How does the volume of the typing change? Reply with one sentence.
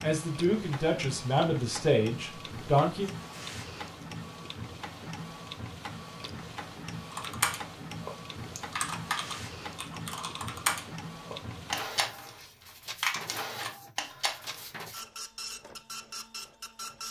The loudness of the typing stays about the same.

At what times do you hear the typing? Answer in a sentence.
You can hear the typing from 7.1 to 14.7 s.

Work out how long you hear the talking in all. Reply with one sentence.
You can hear the talking for 3 seconds altogether.